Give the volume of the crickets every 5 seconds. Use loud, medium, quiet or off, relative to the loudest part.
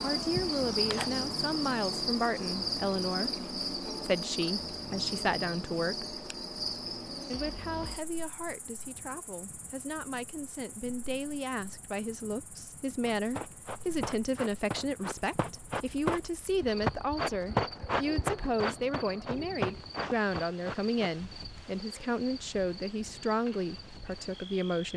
loud, medium, quiet, quiet, quiet.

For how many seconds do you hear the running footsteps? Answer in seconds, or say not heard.
8 s.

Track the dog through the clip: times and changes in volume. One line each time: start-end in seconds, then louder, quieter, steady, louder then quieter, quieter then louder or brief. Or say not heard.
not heard.